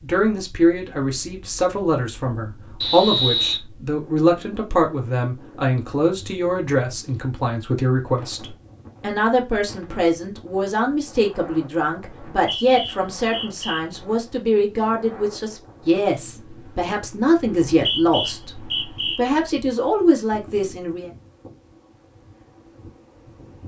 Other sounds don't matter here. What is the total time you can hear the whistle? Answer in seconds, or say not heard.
4 s.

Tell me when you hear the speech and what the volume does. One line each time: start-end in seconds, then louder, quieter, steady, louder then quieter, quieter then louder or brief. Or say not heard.
0.0-21.1 steady.